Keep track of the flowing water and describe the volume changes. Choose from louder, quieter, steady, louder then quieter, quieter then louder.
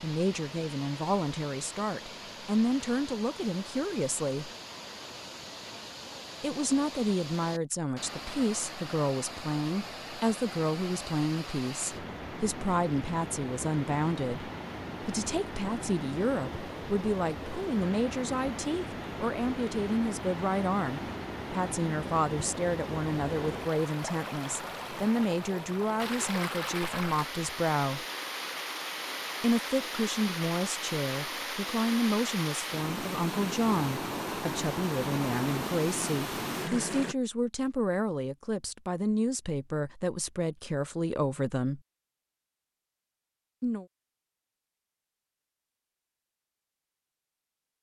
louder.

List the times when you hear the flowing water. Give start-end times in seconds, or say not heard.
0.0-37.1.